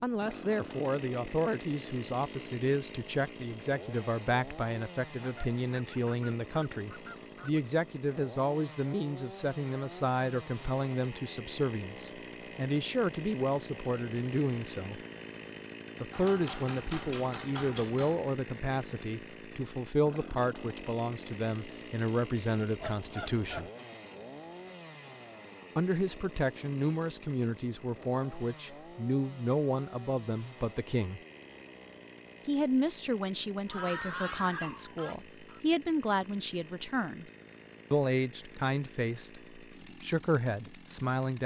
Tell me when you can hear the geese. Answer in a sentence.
The geese can be heard from 5.2 to 7.6 s, from 22.8 to 23.7 s and from 33.6 to 35.6 s.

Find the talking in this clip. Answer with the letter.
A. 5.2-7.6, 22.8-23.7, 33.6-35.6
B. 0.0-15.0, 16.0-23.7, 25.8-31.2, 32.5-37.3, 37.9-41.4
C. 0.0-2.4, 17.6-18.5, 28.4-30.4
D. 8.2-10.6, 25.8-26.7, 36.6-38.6
B.